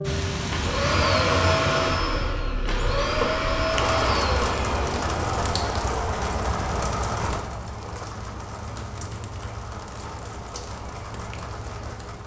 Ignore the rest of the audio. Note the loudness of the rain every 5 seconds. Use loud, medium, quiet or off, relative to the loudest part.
loud, loud, medium.